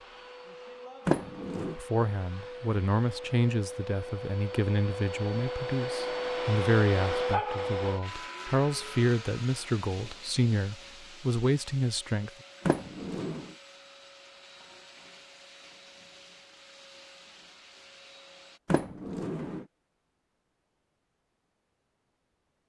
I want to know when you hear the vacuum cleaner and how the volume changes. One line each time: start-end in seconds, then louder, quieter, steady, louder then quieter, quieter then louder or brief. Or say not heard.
0.0-18.6 louder then quieter.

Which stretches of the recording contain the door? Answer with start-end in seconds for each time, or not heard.
1.1-1.8, 12.7-13.6, 18.6-19.6.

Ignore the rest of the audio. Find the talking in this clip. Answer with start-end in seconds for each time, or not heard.
1.6-12.3.